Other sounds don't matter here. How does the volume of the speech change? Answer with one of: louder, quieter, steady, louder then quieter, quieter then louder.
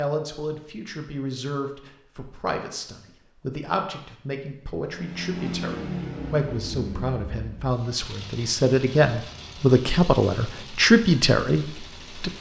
louder.